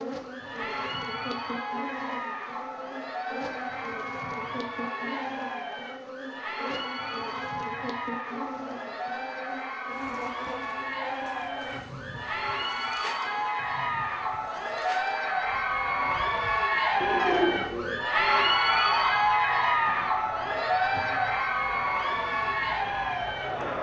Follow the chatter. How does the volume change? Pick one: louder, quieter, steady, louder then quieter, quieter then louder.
louder.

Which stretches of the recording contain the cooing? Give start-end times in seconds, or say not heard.
17.0-18.1.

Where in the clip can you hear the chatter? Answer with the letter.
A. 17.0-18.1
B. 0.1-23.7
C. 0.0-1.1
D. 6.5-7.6
B.